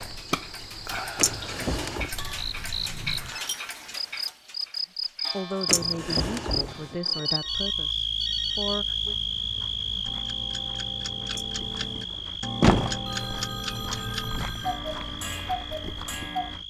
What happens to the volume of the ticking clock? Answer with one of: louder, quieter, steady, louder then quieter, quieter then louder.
quieter then louder.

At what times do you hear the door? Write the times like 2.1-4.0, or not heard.
1.1-2.1, 5.7-7.0, 11.3-13.0.